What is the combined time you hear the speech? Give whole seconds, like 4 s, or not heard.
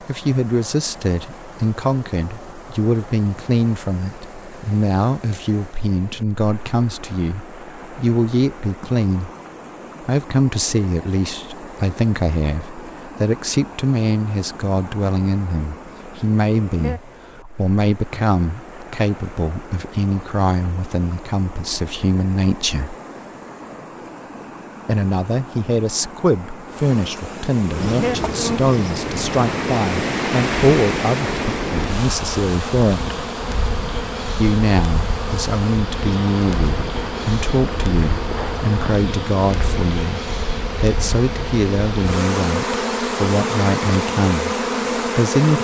42 s.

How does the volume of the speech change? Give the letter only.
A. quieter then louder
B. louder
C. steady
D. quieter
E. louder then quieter
C.